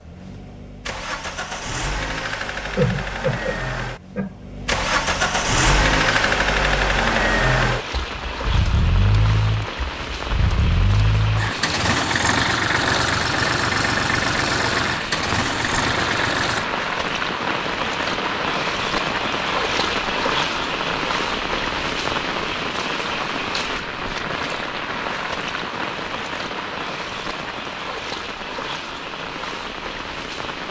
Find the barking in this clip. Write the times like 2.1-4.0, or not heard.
not heard.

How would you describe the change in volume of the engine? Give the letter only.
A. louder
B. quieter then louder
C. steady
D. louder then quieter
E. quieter
A.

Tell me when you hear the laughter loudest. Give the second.
3 s.